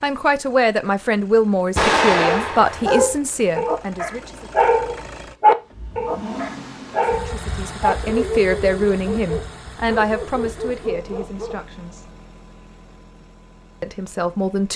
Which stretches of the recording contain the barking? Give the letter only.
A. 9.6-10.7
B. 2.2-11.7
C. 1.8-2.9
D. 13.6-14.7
B.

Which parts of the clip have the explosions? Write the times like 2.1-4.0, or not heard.
1.8-2.9.